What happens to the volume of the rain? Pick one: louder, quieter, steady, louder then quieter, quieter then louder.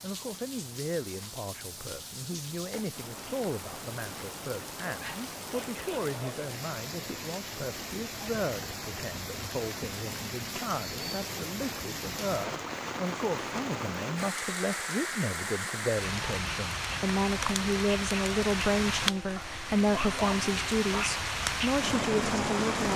louder.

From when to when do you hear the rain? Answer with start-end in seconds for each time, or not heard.
0.0-22.9.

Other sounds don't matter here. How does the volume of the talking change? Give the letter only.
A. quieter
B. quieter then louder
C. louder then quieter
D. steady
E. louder
E.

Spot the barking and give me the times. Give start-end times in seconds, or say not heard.
4.8-6.4, 19.4-21.1.